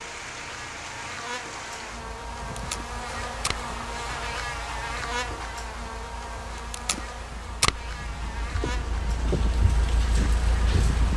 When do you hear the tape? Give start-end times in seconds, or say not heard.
2.4-3.6, 6.5-7.8.